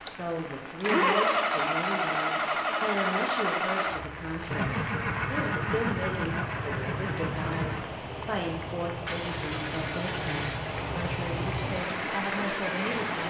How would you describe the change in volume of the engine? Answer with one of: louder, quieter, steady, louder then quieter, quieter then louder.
quieter.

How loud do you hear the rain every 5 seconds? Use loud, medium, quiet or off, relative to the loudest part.
medium, medium, loud.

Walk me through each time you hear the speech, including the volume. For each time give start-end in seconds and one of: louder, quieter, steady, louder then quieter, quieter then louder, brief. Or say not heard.
0.0-13.2 steady.